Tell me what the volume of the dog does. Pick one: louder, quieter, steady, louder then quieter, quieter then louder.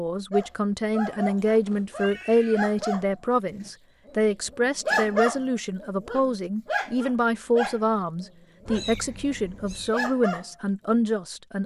louder then quieter.